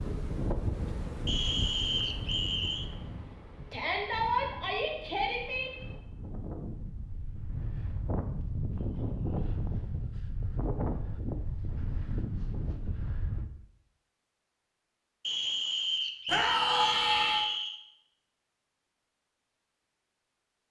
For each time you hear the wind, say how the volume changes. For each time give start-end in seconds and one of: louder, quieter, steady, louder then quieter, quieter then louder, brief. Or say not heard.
0.0-13.5 quieter then louder.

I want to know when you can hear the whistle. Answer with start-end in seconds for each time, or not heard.
1.2-2.9, 15.2-17.8.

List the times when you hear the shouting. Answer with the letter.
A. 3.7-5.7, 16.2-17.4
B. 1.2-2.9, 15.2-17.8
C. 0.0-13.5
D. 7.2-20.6
A.